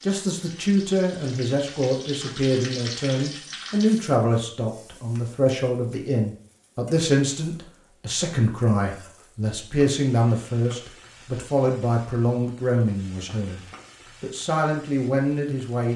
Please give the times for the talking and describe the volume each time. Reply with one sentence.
You can hear the talking from 0.0 to 13.6 s, at a steady volume; and briefly from 14.2 to 15.9 s.